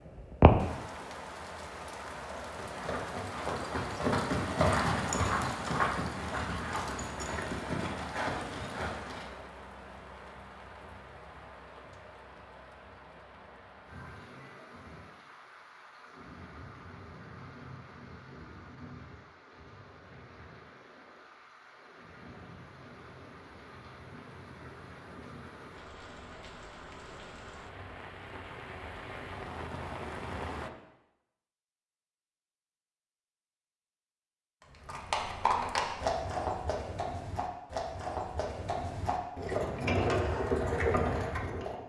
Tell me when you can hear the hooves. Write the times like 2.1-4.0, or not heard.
2.3-9.4, 34.7-41.8.